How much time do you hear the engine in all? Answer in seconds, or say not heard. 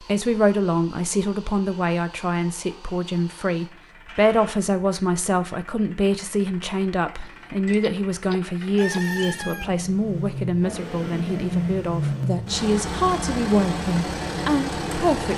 15 s.